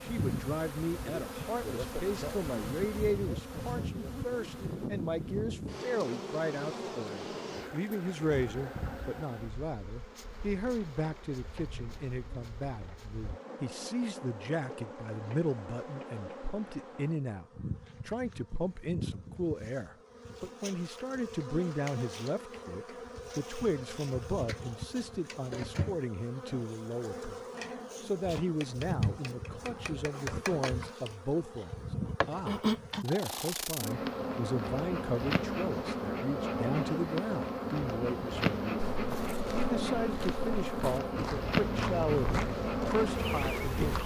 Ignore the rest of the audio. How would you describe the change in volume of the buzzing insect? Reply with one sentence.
The volume of the buzzing insect goes down, then up.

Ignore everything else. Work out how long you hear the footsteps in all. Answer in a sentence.
You can hear the footsteps for 5 seconds altogether.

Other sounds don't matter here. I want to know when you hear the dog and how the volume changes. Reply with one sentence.
The dog can't be heard in this clip.